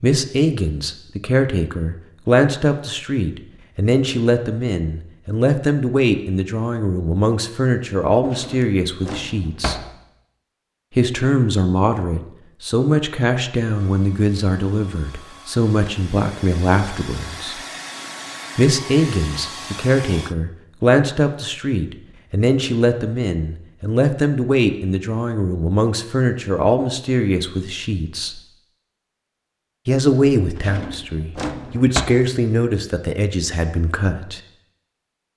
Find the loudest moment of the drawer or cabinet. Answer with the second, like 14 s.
32 s.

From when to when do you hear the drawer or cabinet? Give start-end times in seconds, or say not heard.
8.2-9.9, 30.6-32.0.